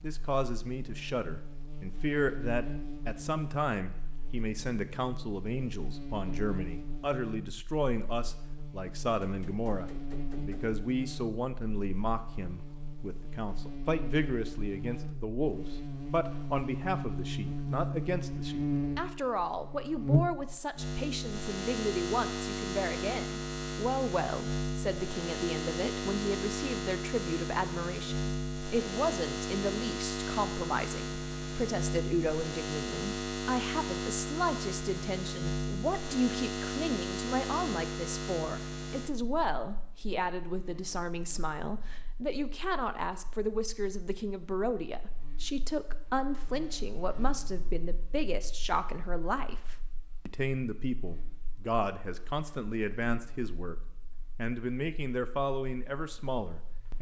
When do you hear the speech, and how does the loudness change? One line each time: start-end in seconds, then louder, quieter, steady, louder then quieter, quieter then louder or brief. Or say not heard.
0.0-56.9 steady.